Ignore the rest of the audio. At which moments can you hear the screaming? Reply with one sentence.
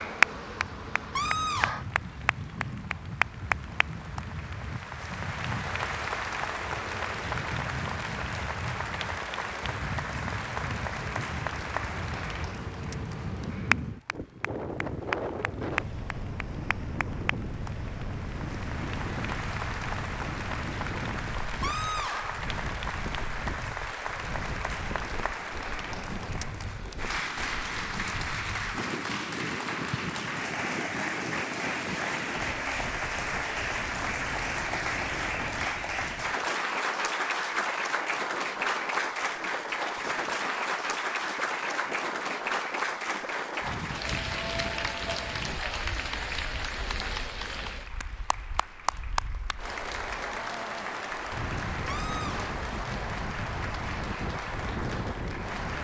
You can hear the screaming from 1.1 to 1.9 s, from 21.6 to 22.4 s and from 51.9 to 52.5 s.